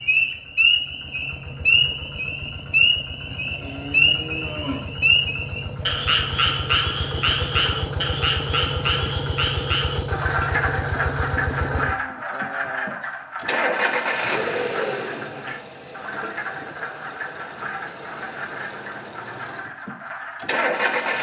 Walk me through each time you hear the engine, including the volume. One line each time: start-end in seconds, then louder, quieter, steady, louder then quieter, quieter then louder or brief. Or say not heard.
0.0-21.1 louder then quieter.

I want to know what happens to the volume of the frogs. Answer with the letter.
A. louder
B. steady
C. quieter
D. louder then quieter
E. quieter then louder
C.